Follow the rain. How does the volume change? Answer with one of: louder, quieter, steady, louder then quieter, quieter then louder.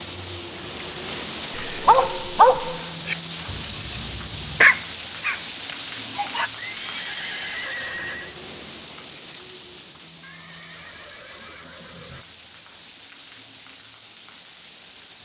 quieter.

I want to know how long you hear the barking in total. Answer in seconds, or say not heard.
6 s.